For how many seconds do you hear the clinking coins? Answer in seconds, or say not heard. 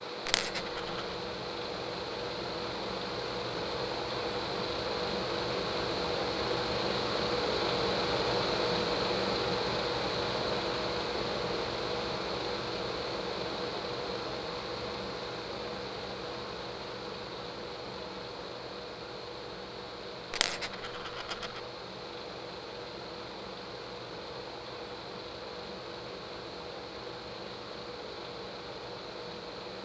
2 s.